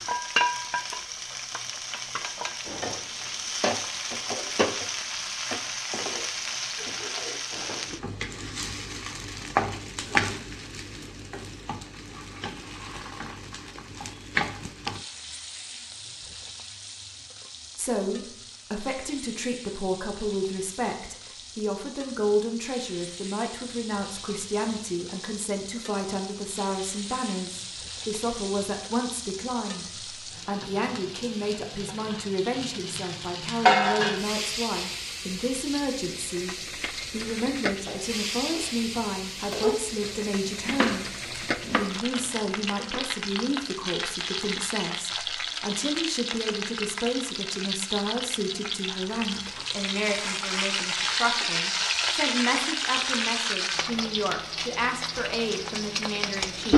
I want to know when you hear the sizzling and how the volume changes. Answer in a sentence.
The sizzling can be heard from 0.0 to 56.7 s, getting quieter then louder.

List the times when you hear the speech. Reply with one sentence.
You can hear the speech from 17.8 to 56.7 s.